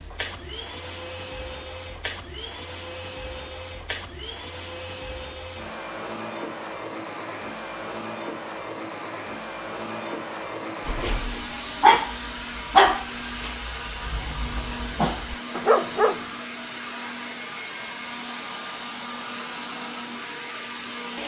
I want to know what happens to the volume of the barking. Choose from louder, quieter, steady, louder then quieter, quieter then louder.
quieter then louder.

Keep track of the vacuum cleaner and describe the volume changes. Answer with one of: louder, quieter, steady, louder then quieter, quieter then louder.
steady.